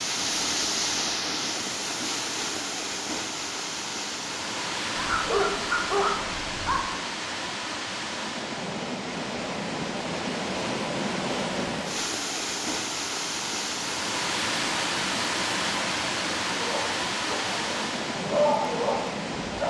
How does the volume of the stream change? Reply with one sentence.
The volume of the stream stays about the same.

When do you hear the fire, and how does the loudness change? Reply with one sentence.
You can't hear the fire here.